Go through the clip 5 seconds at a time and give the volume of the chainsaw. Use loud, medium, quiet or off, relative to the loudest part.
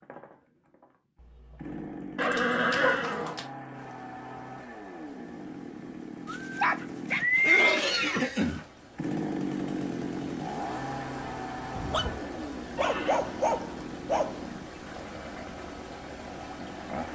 medium, loud, loud, medium.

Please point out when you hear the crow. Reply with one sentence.
You can't hear the crow here.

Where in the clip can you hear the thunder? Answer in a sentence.
You can't hear the thunder here.